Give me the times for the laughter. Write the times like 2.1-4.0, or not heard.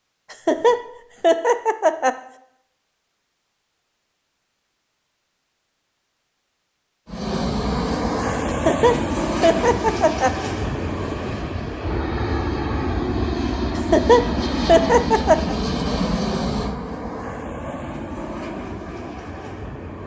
0.3-2.2, 8.5-10.3, 13.8-15.6.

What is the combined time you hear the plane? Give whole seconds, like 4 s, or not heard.
13 s.